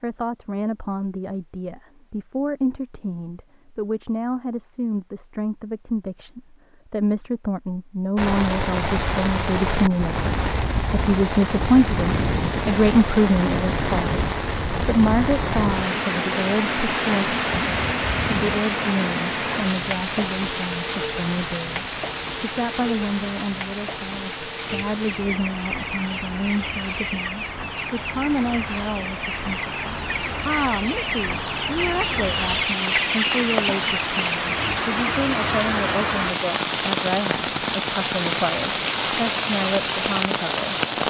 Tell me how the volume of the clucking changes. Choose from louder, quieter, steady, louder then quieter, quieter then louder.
louder.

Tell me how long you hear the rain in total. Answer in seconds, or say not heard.
33 s.